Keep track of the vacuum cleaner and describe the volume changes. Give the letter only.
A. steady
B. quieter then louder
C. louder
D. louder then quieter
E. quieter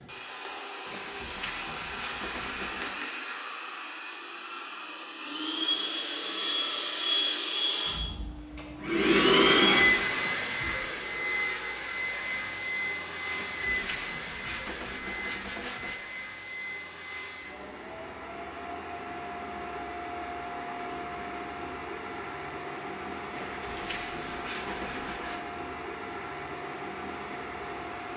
D.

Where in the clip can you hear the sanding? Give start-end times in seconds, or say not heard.
0.8-3.0, 13.3-16.0, 23.3-25.4.